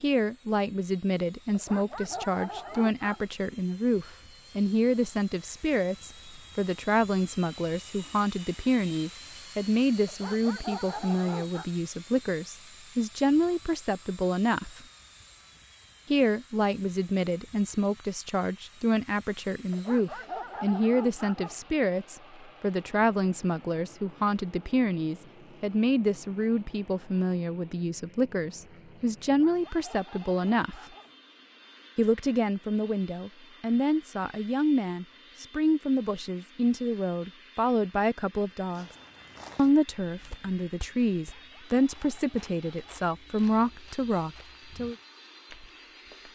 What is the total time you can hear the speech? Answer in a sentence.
The speech can be heard for 42 seconds in total.